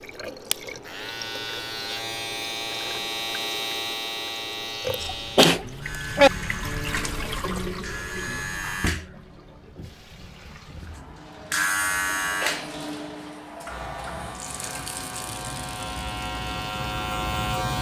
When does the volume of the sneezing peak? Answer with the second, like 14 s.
6 s.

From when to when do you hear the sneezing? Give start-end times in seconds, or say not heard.
5.0-6.3, 12.4-12.8.